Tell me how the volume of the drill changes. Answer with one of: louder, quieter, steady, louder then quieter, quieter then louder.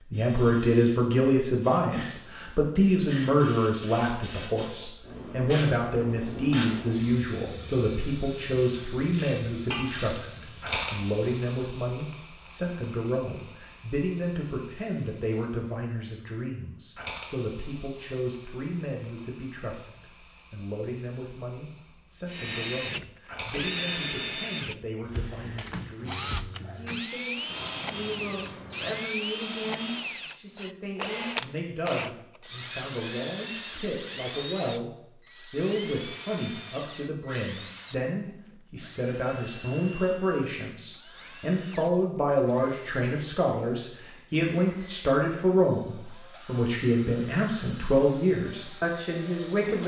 quieter.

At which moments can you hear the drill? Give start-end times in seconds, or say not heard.
22.2-49.8.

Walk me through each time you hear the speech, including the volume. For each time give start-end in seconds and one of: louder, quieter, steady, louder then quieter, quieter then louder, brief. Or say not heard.
0.1-49.8 quieter then louder.